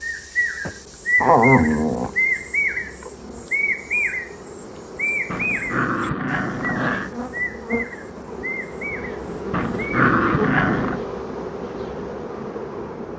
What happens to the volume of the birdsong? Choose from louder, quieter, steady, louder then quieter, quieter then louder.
quieter.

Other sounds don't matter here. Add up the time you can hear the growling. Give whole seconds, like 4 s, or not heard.
4 s.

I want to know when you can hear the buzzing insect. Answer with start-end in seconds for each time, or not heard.
0.0-13.1.